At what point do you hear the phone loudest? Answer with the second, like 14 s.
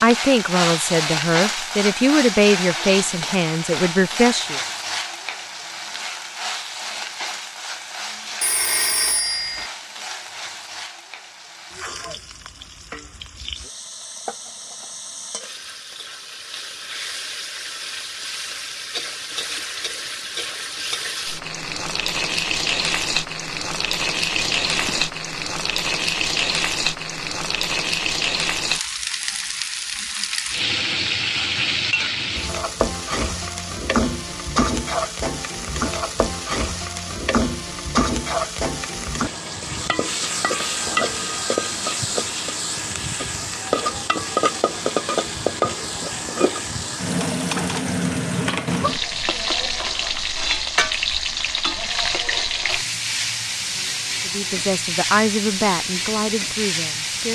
9 s.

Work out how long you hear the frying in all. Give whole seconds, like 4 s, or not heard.
57 s.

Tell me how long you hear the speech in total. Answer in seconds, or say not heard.
8 s.